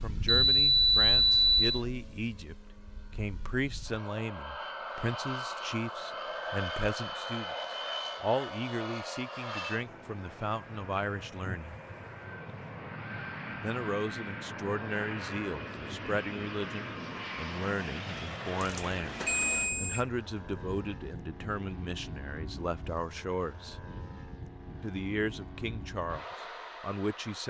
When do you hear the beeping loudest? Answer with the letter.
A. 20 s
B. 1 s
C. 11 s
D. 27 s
B.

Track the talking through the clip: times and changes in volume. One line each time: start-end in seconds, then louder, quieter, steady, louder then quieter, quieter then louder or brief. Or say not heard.
0.0-11.8 steady
13.6-23.8 steady
24.8-27.4 brief.